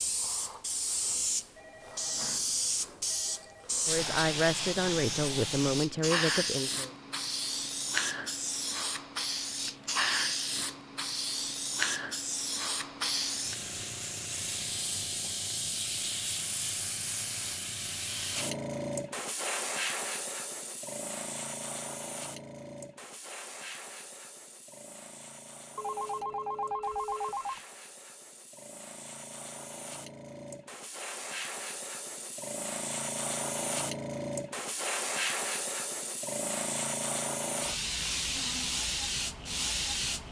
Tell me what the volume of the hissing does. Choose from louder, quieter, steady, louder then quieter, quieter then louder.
quieter then louder.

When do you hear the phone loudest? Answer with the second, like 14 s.
27 s.